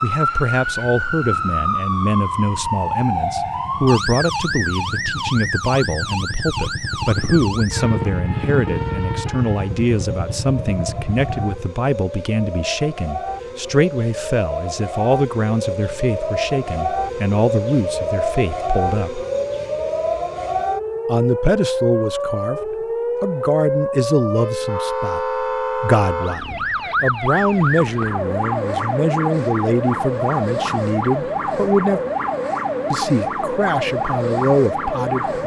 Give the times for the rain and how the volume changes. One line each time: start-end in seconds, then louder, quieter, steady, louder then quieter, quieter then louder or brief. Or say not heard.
not heard.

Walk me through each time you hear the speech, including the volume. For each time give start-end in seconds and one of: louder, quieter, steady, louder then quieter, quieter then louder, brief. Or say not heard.
0.0-19.2 steady
21.1-32.0 steady
32.9-35.4 brief.